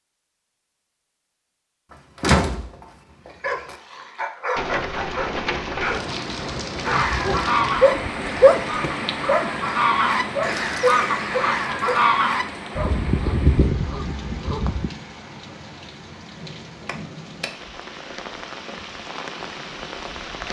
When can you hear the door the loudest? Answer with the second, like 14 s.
2 s.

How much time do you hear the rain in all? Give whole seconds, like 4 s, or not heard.
16 s.